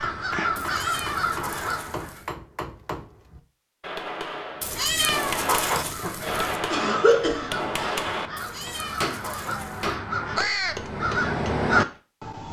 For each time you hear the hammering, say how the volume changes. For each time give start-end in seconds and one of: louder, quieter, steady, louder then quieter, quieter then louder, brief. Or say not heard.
0.0-12.0 louder then quieter.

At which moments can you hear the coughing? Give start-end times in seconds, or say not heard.
6.2-7.5.